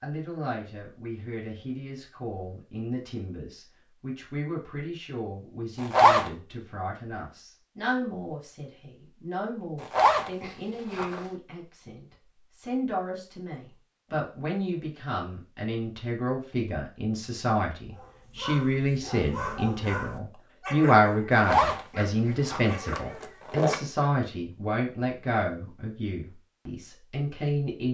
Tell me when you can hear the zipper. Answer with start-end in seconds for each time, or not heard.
5.8-6.3, 9.8-11.2, 21.4-23.8.